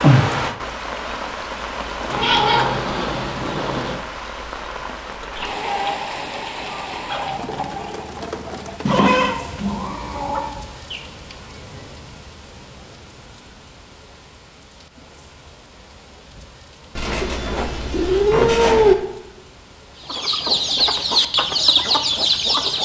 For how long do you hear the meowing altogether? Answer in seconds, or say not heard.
6 s.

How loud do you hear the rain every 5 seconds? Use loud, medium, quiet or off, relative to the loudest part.
loud, medium, quiet, quiet, quiet.